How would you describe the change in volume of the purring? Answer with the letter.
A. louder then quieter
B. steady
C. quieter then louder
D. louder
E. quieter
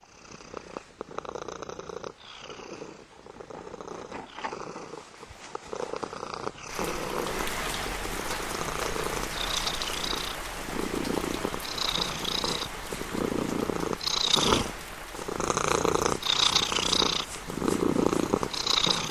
D.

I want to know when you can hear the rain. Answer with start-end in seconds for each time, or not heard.
6.7-18.8.